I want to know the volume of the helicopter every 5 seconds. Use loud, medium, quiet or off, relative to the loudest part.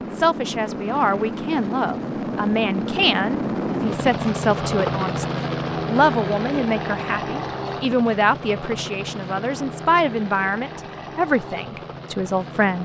loud, loud, medium.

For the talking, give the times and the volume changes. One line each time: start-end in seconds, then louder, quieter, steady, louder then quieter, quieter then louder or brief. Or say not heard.
0.0-12.8 steady.